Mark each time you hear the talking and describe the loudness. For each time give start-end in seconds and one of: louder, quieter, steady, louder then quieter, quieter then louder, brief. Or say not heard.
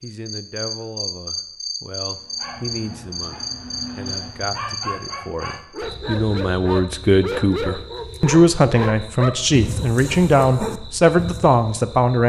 0.0-12.2 louder.